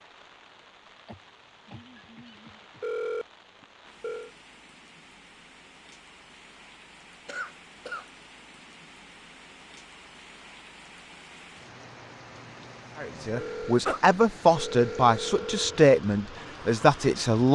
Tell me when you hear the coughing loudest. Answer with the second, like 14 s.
14 s.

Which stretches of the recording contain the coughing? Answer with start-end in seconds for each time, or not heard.
1.1-2.9, 7.2-8.1, 13.3-14.0.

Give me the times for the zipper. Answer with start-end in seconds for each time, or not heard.
not heard.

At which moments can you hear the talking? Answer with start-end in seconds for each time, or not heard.
13.0-17.5.